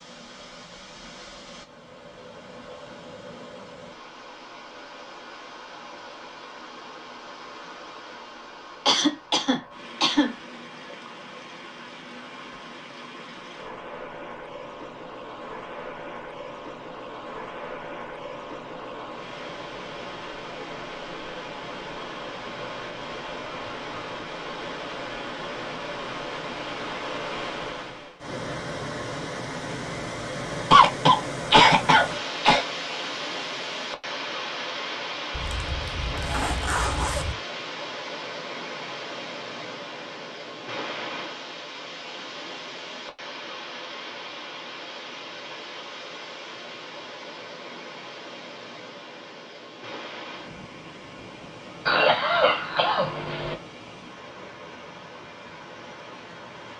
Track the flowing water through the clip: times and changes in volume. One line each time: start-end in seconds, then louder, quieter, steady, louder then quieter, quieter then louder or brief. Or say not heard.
0.0-56.7 louder then quieter.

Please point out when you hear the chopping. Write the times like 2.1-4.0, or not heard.
not heard.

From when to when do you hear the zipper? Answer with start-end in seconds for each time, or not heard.
35.3-37.4.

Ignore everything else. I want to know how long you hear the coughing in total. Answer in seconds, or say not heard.
5 s.